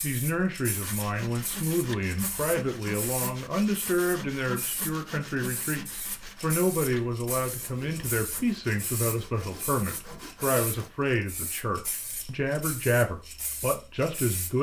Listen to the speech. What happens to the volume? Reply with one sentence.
The volume of the speech stays about the same.